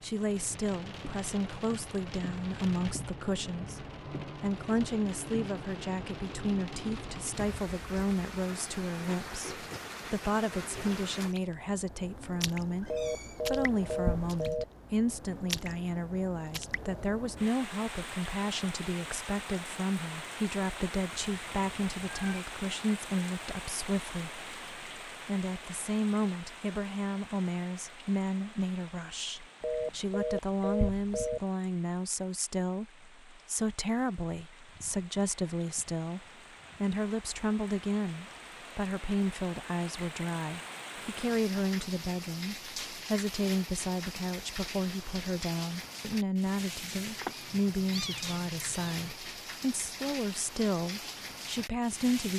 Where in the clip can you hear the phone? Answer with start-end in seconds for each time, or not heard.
12.9-14.7, 29.6-31.4.